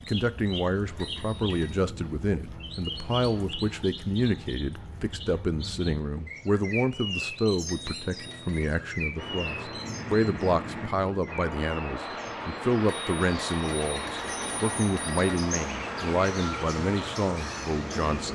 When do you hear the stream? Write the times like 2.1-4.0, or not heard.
9.2-18.2.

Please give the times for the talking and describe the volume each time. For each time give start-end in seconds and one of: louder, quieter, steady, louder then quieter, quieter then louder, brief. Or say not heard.
0.0-18.2 steady.